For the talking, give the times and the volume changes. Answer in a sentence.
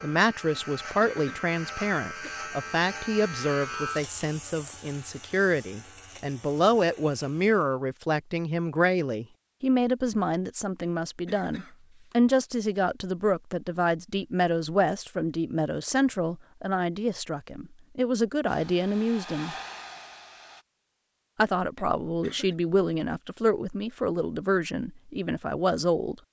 The talking can be heard from 0.0 to 19.6 s, at a steady volume; and from 21.4 to 26.1 s, at a steady volume.